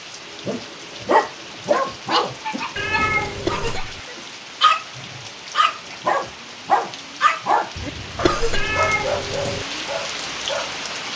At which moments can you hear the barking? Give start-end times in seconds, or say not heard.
0.5-10.8.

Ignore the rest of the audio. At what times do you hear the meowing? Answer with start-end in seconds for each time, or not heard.
2.8-3.8, 8.5-9.7.